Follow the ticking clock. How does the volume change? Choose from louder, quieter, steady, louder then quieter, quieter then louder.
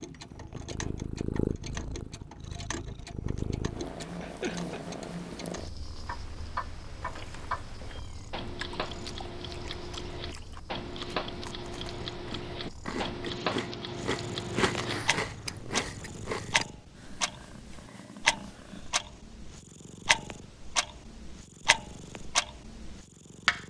louder.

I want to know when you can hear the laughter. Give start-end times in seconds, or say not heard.
4.0-4.8.